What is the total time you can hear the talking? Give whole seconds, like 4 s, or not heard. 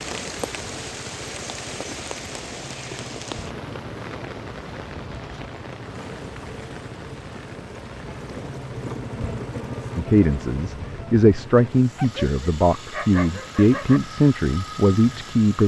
6 s.